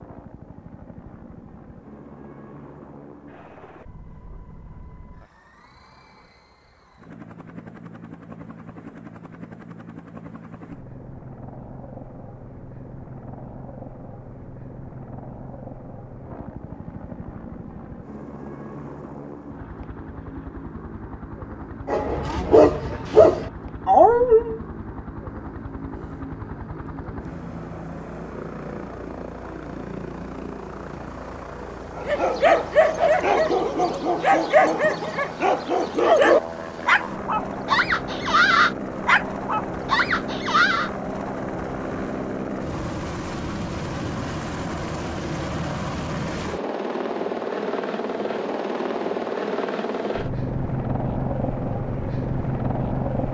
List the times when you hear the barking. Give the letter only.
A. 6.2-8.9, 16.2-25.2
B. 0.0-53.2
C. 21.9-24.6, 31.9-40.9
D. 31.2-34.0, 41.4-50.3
C.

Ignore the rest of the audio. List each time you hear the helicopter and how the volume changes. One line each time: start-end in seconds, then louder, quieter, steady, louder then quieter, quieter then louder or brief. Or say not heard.
0.0-53.2 louder.